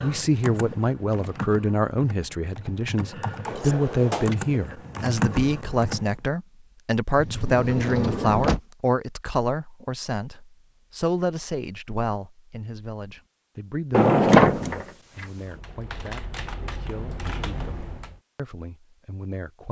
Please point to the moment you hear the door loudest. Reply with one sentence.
The loudest moment of the door is at 14 seconds.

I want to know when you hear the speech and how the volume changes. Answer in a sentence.
The speech can be heard from 0.0 to 19.6 s, getting quieter.